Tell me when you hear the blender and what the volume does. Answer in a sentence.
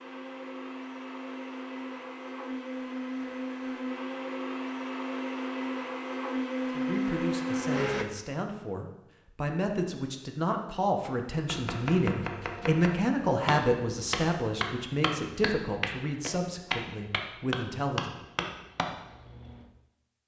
You can hear the blender from 0.0 to 8.1 s, getting louder.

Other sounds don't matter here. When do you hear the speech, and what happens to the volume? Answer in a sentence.
You can hear the speech from 6.7 to 18.1 s, getting louder then quieter.